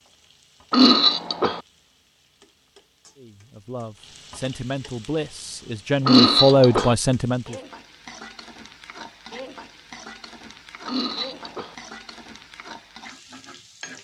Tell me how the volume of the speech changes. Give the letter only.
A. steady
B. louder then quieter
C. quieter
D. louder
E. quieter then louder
D.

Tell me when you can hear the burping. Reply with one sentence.
The burping can be heard from 0.7 to 1.6 s, from 6.0 to 7.0 s and from 10.8 to 11.8 s.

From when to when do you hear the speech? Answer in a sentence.
You can hear the speech from 3.1 to 7.5 s.